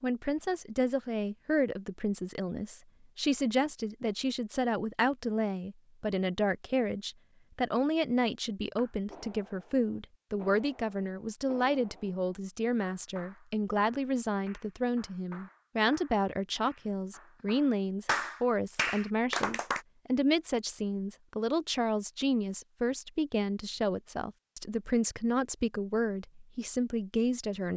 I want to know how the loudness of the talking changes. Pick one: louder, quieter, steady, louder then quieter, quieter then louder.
steady.